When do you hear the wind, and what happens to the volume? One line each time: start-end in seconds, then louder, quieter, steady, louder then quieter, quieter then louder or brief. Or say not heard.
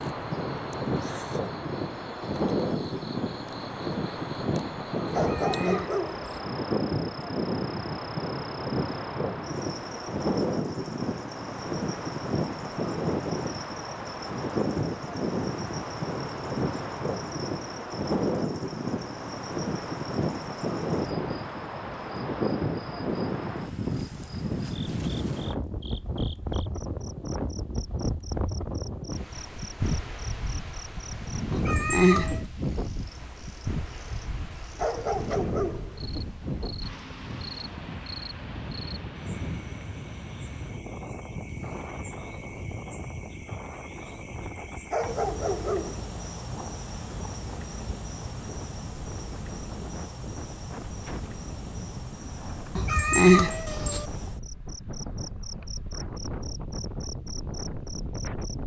0.0-58.6 quieter.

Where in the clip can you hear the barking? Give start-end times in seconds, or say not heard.
5.1-6.3, 34.8-36.0, 44.9-46.1.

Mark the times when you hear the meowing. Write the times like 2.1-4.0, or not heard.
5.2-6.5, 31.5-32.4, 52.8-54.0.